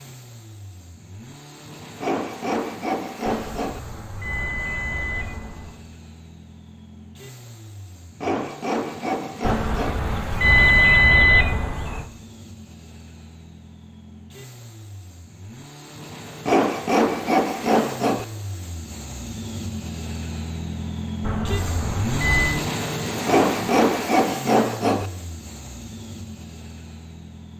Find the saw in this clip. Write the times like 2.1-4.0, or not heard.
2.0-3.8, 8.2-10.0, 16.4-18.2, 23.2-25.1.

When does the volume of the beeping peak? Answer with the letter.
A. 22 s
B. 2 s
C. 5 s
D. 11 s
D.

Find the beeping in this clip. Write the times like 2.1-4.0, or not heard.
3.2-5.8, 9.4-12.1, 21.2-22.6.